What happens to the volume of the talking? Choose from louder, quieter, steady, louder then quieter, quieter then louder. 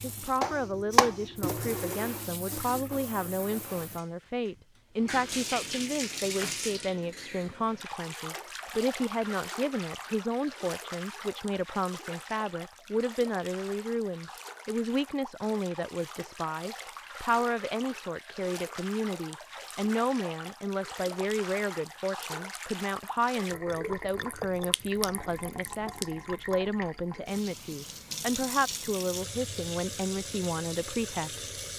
steady.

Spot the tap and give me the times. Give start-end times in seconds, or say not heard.
0.0-31.7.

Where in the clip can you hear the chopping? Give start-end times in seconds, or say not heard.
0.4-1.9.